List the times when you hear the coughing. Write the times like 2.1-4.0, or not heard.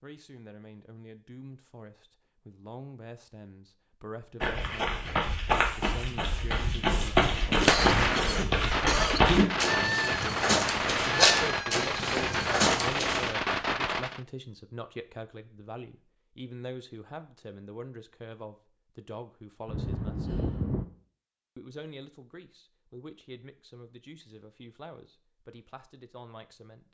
7.5-9.2, 19.6-20.9.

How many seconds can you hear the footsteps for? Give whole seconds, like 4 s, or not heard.
9 s.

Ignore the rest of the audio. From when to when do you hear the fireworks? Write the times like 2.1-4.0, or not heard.
7.2-14.2.